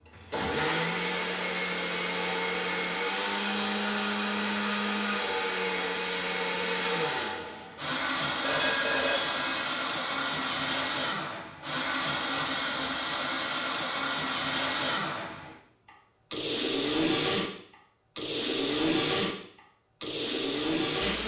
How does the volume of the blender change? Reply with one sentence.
The volume of the blender stays about the same.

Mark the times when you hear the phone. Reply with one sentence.
The phone can be heard from 8.4 to 9.7 s.